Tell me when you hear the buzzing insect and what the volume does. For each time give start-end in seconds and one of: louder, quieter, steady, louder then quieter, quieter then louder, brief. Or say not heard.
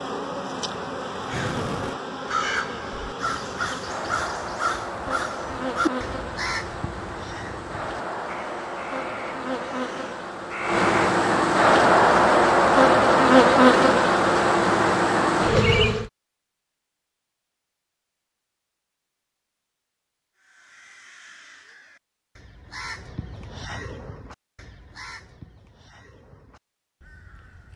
0.0-16.1 louder.